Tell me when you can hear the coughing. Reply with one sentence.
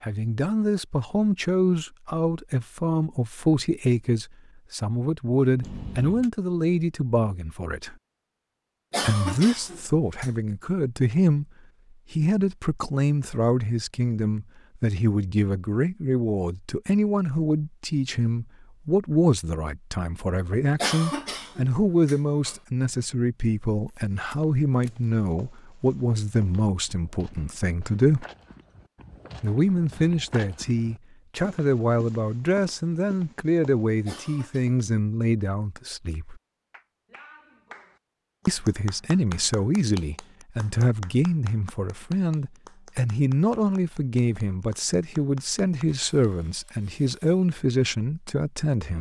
The coughing can be heard from 8.9 to 10.3 s, from 20.8 to 22.6 s and from 34.0 to 34.6 s.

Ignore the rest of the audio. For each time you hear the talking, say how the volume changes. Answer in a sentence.
The talking can be heard from 0.0 to 8.0 s, at a steady volume; briefly from 9.0 to 11.4 s; from 12.1 to 28.2 s, at a steady volume; from 29.4 to 36.4 s, at a steady volume; and from 38.5 to 48.9 s, at a steady volume.